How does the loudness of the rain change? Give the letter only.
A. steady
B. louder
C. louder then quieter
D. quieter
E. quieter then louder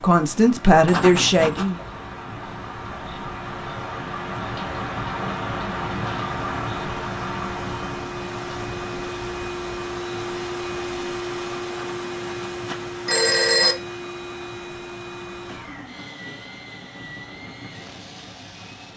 C.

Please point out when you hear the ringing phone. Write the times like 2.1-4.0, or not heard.
0.8-1.7, 11.7-13.8.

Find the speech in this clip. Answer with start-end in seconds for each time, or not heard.
0.0-1.8.